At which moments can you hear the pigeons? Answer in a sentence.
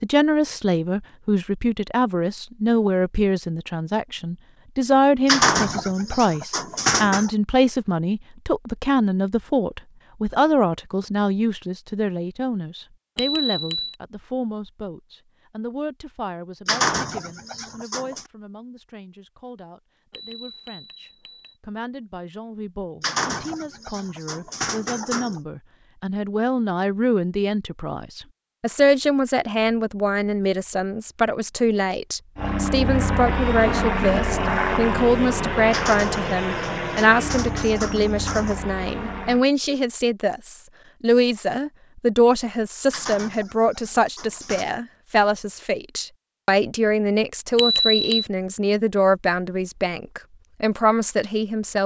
The pigeons can be heard from 5.2 to 7.3 s, from 16.6 to 18.2 s, from 23.0 to 25.4 s, from 35.7 to 38.6 s and from 42.9 to 44.6 s.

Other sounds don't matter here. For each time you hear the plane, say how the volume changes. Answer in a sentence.
The plane can be heard from 32.4 to 39.5 s, getting quieter.